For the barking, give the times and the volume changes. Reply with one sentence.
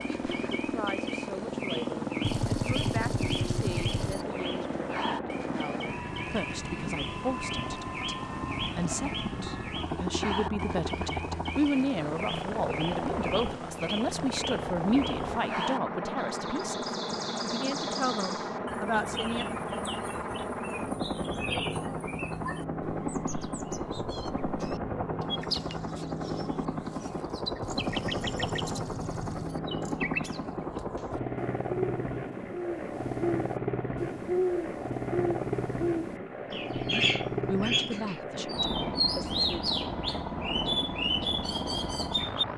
The barking can't be heard in this clip.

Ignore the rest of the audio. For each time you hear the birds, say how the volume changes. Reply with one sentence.
You can hear the birds from 0.0 to 42.5 s, getting louder.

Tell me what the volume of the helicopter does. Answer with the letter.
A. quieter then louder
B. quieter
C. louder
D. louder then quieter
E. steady
E.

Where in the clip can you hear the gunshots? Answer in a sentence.
The gunshots can be heard from 2.2 to 4.2 s and from 27.6 to 29.6 s.